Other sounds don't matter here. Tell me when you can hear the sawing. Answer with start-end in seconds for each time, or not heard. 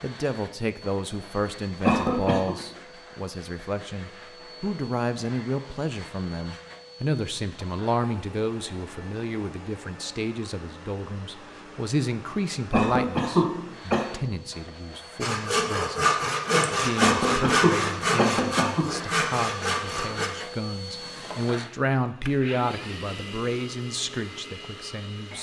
15.2-20.3.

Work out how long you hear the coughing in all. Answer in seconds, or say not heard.
4 s.